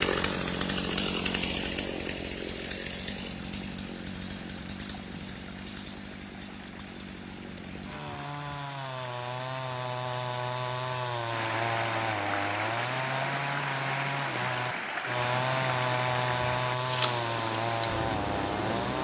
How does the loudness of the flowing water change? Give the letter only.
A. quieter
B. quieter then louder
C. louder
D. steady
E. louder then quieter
C.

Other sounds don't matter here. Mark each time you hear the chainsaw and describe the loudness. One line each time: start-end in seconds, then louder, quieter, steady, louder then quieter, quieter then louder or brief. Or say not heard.
0.0-18.9 quieter then louder.